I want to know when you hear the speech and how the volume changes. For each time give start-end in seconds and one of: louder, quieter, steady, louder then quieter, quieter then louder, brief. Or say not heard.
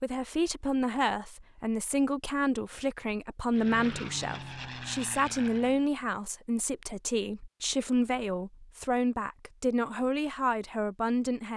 0.0-11.5 steady.